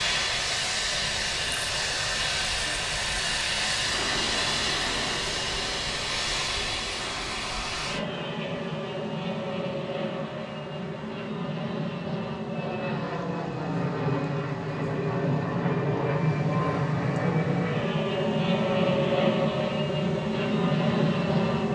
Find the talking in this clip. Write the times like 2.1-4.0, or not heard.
not heard.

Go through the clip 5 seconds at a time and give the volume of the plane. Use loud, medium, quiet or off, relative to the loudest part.
loud, medium, medium, loud, loud.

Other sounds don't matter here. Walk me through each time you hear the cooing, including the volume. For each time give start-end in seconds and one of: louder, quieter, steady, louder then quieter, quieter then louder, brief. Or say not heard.
not heard.